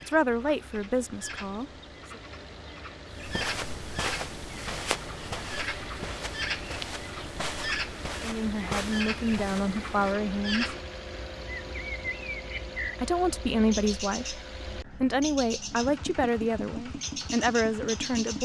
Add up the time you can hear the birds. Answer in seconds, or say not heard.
16 s.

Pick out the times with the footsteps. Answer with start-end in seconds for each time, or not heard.
3.1-10.2.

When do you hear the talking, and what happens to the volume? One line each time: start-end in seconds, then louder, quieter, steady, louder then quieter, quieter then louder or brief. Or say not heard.
0.0-2.2 brief
8.2-10.8 brief
12.9-18.4 steady.